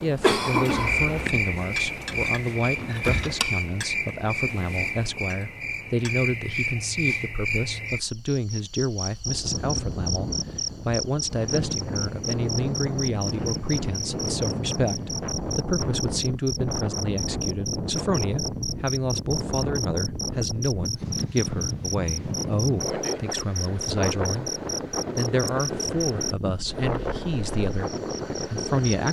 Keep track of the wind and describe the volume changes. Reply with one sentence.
The loudness of the wind stays about the same.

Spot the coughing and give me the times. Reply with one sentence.
You can hear the coughing from 0.2 to 1.3 s.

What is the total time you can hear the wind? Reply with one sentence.
The wind can be heard for 20 seconds in total.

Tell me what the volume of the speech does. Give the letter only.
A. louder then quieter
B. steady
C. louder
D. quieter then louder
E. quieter
B.